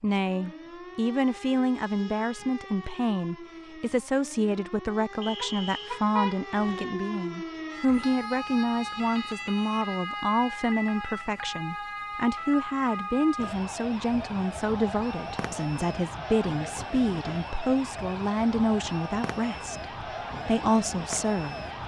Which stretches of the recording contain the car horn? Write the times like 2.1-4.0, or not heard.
5.4-6.8.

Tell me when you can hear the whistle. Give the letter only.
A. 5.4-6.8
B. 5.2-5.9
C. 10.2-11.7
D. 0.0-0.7
B.